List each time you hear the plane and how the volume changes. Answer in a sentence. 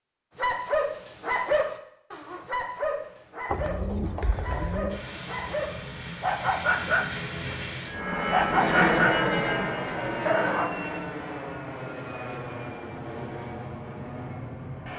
You can hear the plane from 4.8 to 14.9 s, getting louder then quieter.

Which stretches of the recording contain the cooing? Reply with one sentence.
You can hear the cooing from 3.5 to 5.0 s.